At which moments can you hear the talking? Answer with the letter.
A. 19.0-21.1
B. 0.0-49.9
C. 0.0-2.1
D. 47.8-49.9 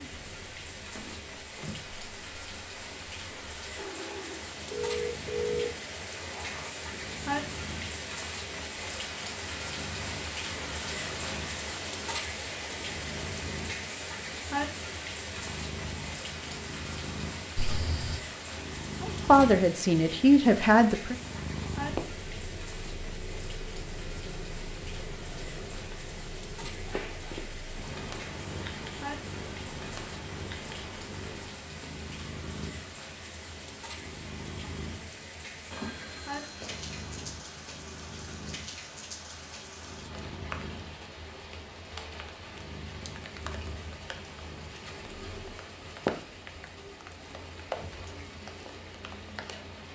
A.